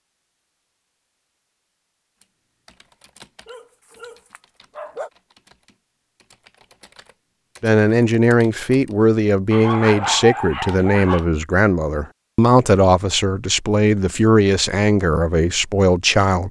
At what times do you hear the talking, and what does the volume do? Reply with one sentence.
The talking can be heard from 7.6 to 16.4 s, at a steady volume.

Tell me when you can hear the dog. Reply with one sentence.
The dog can be heard from 3.5 to 5.1 s and from 9.5 to 11.2 s.